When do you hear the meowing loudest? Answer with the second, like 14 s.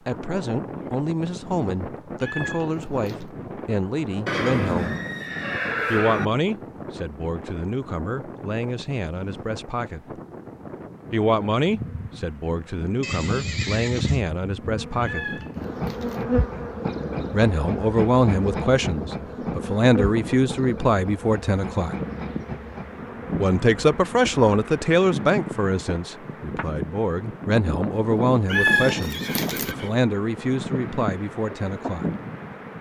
29 s.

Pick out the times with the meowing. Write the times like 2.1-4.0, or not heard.
2.2-3.2, 15.0-16.2, 28.4-29.8.